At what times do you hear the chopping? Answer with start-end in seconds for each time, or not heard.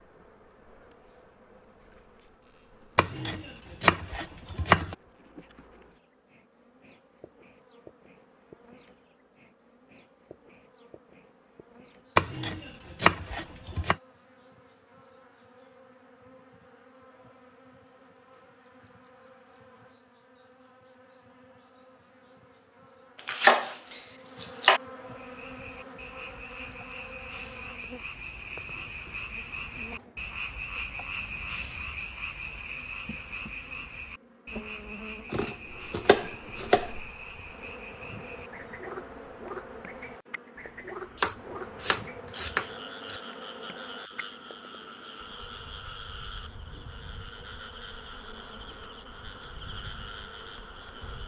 3.0-5.0, 12.2-13.9, 23.2-24.8, 35.3-36.9, 41.1-43.2.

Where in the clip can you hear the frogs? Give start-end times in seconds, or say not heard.
25.1-51.2.